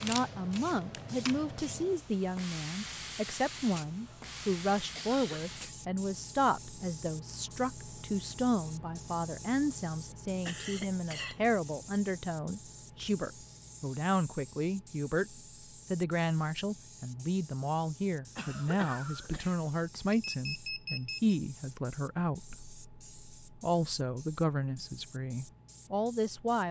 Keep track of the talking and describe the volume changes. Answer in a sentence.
The loudness of the talking stays about the same.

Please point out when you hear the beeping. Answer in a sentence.
You can hear the beeping from 20.1 to 21.3 s.